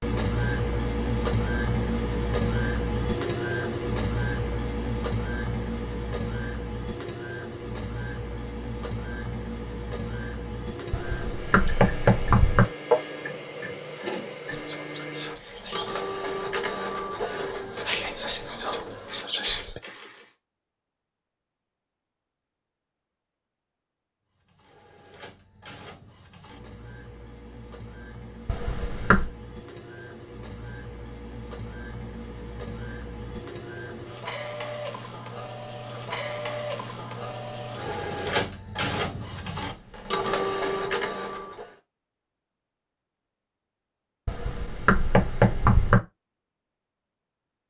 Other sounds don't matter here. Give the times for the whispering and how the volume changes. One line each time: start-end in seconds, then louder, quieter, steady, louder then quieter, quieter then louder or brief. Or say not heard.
14.5-19.8 louder.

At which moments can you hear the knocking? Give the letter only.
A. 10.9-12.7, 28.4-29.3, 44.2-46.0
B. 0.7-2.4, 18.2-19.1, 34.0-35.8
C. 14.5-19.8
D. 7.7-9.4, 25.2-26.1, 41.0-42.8
A.